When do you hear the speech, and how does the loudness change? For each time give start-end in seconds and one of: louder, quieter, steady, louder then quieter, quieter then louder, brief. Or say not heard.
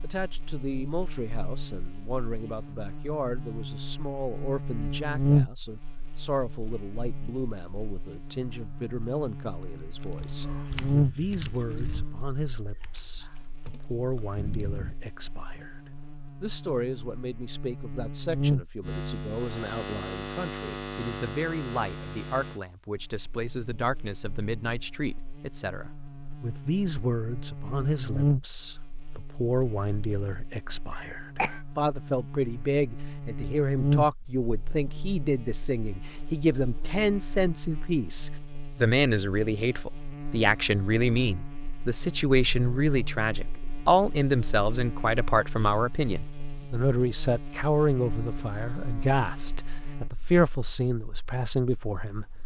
0.0-15.8 steady
16.4-52.2 louder.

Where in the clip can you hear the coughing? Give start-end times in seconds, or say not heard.
30.9-31.6.